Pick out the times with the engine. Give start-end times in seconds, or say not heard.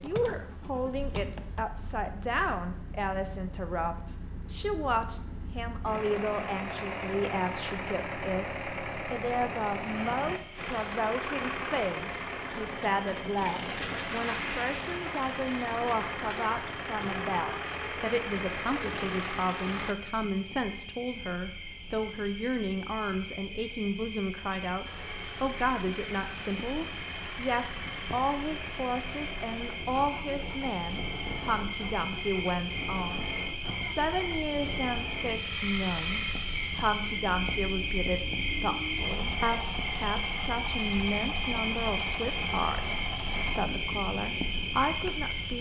0.0-19.9, 24.8-43.6.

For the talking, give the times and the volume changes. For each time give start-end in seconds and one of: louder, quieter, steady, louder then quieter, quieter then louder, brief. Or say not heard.
0.0-45.5 steady.